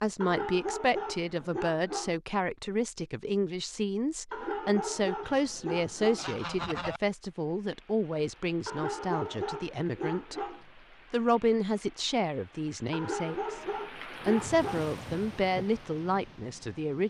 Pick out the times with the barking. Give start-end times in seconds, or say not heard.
0.2-2.1, 4.3-6.2, 8.7-10.6, 12.9-14.9.